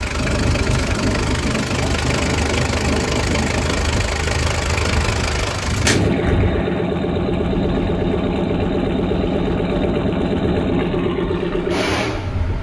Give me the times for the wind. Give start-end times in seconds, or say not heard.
0.0-12.5.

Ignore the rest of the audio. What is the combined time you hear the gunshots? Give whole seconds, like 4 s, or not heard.
2 s.